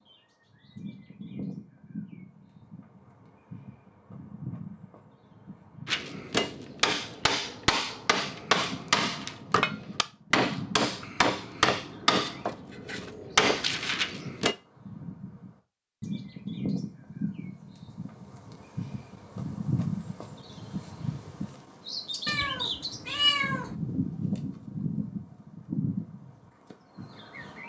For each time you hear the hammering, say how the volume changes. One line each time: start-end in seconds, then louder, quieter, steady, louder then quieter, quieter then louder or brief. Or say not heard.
5.8-14.6 steady.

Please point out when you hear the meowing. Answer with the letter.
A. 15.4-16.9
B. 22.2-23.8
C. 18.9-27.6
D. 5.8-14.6
B.